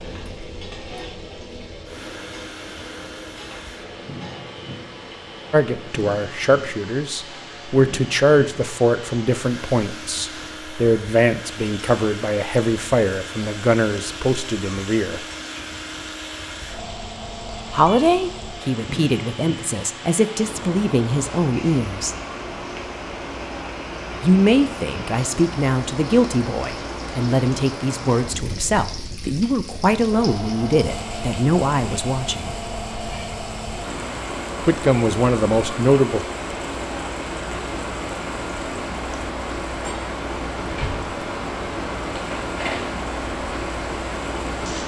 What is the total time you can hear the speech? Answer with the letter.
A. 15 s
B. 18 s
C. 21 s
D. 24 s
D.